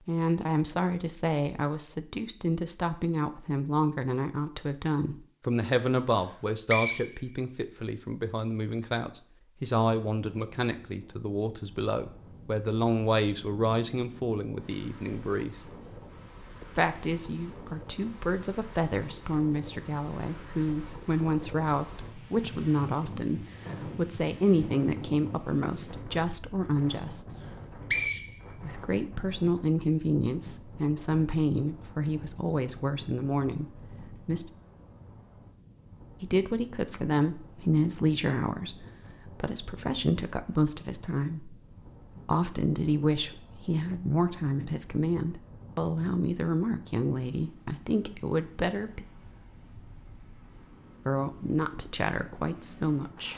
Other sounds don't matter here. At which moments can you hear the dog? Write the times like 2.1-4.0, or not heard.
not heard.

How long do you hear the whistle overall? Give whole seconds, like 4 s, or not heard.
3 s.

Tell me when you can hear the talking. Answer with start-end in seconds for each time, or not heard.
0.1-15.6, 16.6-27.4, 28.6-34.5, 36.2-41.6, 42.2-49.0, 51.0-53.3.